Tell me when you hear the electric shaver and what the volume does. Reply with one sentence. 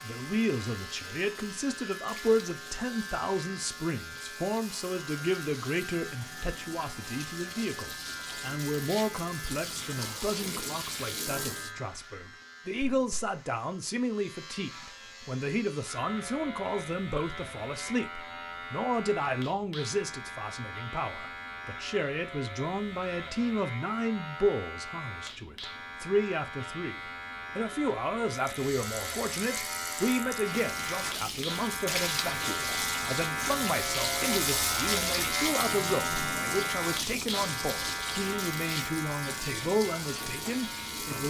The electric shaver can be heard from 0.0 to 41.2 s, getting louder.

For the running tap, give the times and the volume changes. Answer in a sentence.
The running tap can be heard from 0.0 to 11.7 s, getting louder; and from 28.4 to 41.2 s, getting louder then quieter.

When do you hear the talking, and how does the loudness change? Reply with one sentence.
The talking can be heard from 0.0 to 41.2 s, at a steady volume.